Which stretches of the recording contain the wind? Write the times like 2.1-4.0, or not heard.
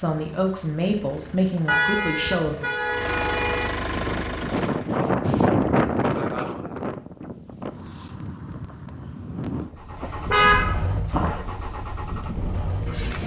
3.9-13.2.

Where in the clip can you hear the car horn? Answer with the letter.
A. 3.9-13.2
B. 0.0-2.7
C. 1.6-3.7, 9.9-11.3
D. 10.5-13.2
C.